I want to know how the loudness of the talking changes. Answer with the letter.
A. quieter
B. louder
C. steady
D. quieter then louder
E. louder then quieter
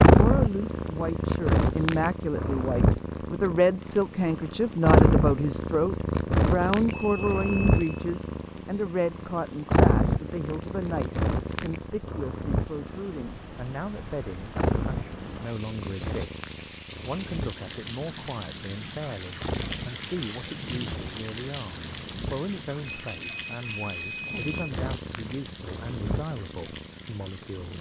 A.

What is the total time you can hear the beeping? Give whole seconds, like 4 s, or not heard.
3 s.